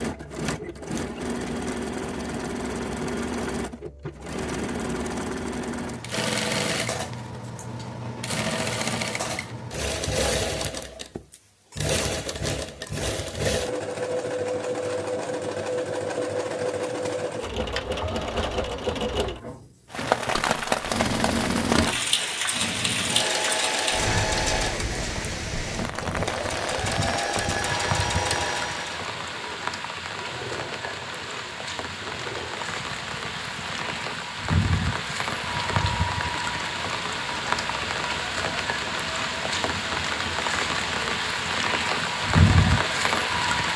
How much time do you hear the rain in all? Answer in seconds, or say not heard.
24 s.